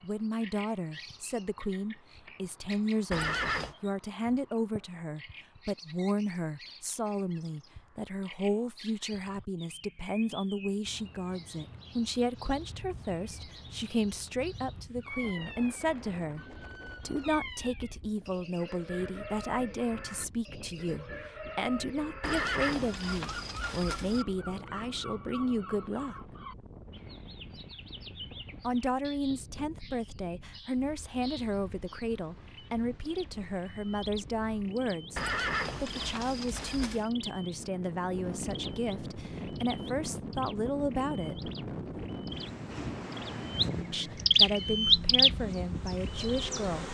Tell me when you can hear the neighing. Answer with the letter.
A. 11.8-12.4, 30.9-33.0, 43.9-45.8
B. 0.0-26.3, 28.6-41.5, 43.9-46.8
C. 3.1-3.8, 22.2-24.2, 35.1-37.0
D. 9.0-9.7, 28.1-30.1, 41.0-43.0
C.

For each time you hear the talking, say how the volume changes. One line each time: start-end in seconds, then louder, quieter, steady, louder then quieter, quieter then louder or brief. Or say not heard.
0.0-26.3 steady
28.6-41.5 steady
43.9-46.8 brief.